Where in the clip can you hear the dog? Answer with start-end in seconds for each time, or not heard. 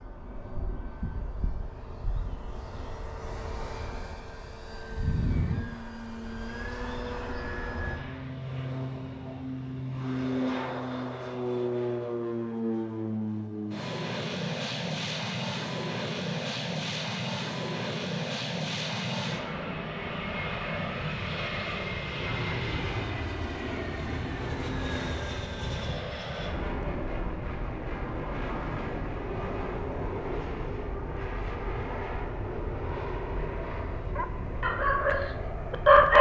34.1-36.1.